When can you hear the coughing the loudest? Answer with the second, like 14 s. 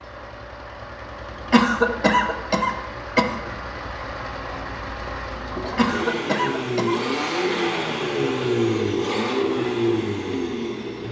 2 s.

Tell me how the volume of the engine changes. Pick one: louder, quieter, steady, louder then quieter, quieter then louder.
louder.